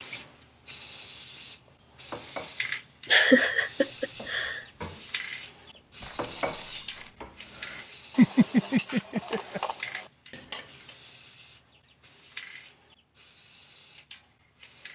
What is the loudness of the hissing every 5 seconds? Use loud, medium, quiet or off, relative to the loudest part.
loud, loud, quiet.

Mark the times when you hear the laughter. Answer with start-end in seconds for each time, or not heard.
3.1-4.6, 8.2-9.6.